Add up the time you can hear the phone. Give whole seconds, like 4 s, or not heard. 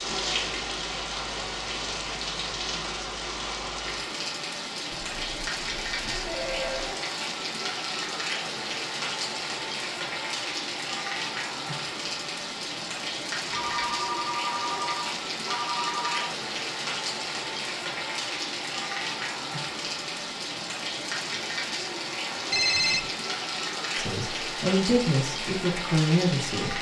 5 s.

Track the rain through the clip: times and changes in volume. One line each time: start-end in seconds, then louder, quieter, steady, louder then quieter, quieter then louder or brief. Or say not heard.
0.0-26.7 steady.